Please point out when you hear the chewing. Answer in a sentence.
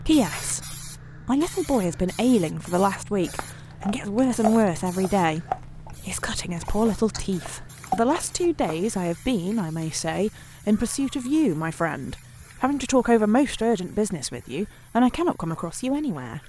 You can hear the chewing from 3.2 to 8.8 s.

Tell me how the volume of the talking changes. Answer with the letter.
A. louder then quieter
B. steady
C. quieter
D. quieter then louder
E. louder
B.